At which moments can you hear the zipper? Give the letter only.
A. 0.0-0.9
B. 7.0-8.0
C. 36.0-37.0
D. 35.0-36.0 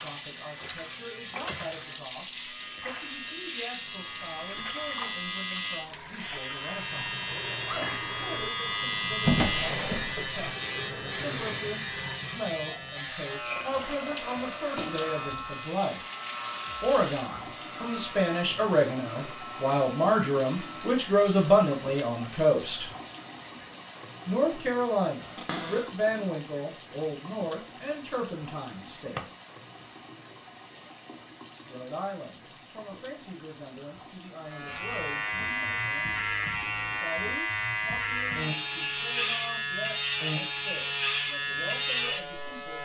B.